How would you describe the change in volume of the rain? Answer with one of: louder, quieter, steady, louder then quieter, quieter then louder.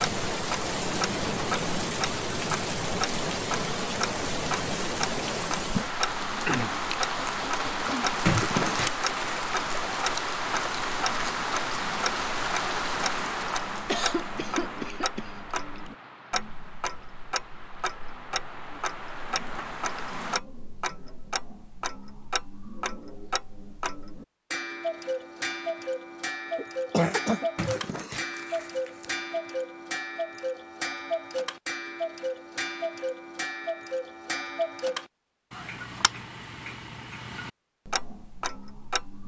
quieter.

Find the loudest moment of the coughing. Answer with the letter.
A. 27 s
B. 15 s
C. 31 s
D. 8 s
A.